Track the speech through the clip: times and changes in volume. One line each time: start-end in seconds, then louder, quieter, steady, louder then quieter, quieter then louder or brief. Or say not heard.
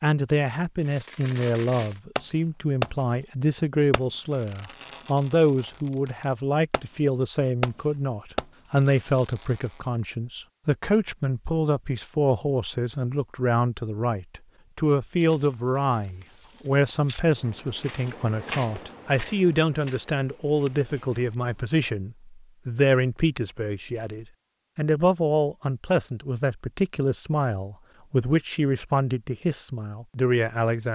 0.0-30.9 steady.